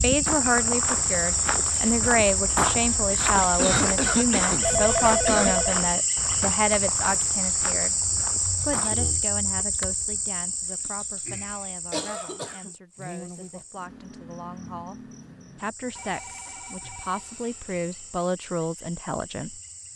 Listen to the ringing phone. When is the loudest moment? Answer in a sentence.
The volume of the ringing phone peaks at 5 seconds.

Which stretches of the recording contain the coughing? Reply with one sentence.
You can hear the coughing from 3.4 to 5.5 s and from 11.9 to 12.8 s.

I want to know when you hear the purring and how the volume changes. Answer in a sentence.
You can't hear the purring here.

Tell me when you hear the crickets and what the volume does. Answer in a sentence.
The crickets can be heard from 0.0 to 19.9 s, getting quieter.